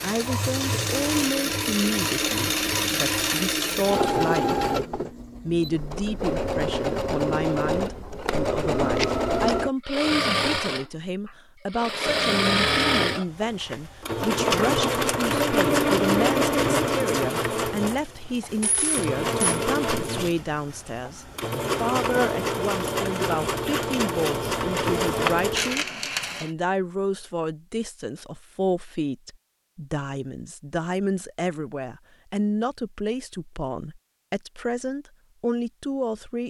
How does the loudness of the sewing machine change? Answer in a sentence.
The volume of the sewing machine stays about the same.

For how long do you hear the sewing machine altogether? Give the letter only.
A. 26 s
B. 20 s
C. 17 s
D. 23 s
A.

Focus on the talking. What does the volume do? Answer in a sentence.
The volume of the talking stays about the same.